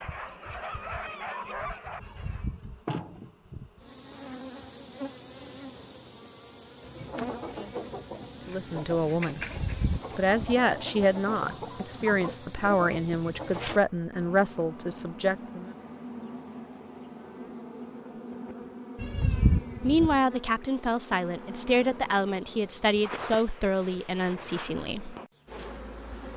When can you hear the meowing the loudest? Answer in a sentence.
The volume of the meowing peaks at 19 seconds.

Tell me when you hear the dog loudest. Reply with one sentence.
The loudest moment of the dog is at 2 seconds.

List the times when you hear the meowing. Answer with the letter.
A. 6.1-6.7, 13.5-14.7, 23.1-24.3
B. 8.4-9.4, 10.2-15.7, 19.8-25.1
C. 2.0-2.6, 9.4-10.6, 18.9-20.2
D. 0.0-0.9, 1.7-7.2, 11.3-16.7
C.